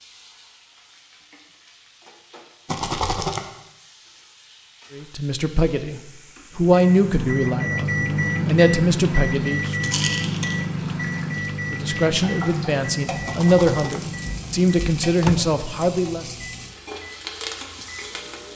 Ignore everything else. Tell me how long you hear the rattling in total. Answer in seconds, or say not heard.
2 s.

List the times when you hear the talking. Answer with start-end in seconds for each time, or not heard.
4.9-9.8, 11.7-16.4.